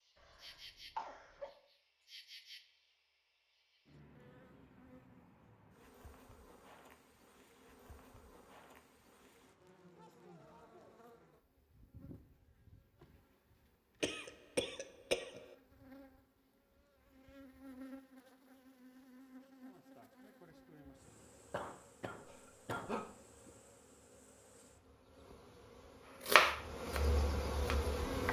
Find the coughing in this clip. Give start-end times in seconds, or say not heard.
0.1-1.5, 14.0-15.6, 21.5-23.1.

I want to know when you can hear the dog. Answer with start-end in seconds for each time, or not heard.
not heard.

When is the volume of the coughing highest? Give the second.
15 s.